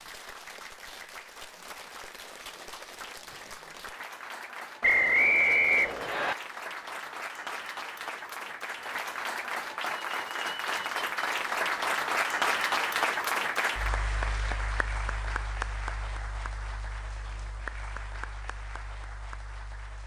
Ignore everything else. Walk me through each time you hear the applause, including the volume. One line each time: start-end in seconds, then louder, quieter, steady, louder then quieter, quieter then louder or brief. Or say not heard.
0.0-20.0 louder then quieter.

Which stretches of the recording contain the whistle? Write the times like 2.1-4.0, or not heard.
4.8-6.3.